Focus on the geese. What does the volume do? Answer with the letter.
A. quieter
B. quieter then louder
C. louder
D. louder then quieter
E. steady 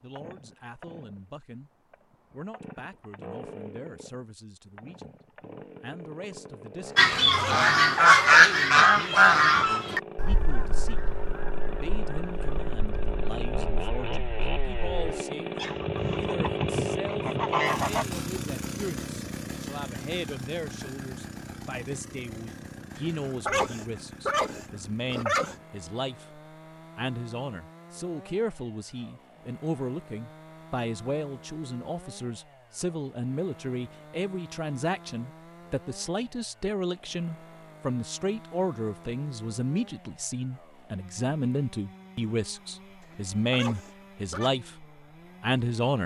B.